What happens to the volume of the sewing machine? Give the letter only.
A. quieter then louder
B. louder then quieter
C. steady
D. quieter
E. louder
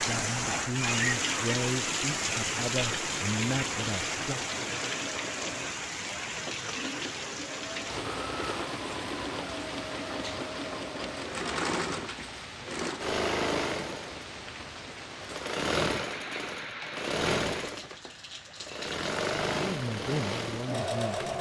E.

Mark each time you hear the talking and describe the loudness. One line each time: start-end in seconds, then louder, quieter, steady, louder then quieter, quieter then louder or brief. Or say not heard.
0.0-4.5 quieter then louder
19.6-21.3 brief.